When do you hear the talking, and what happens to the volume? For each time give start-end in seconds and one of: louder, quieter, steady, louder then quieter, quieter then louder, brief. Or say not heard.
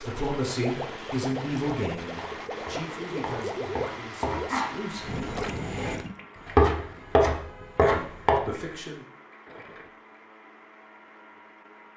0.0-5.2 quieter
7.8-9.1 brief.